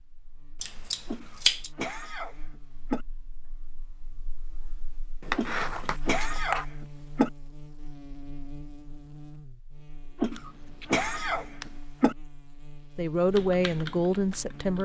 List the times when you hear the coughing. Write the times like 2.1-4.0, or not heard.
1.1-3.0, 5.3-7.3, 10.2-12.2.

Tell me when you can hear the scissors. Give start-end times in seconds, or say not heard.
0.6-1.7, 5.2-6.7, 10.3-11.8.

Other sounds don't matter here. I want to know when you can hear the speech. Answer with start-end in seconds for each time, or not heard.
12.9-14.8.